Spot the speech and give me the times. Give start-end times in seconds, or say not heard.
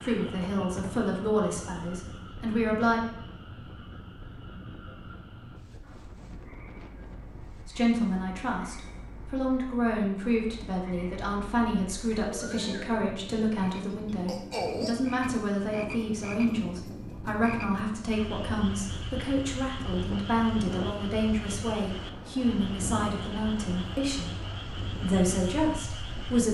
0.0-3.0, 7.7-26.5.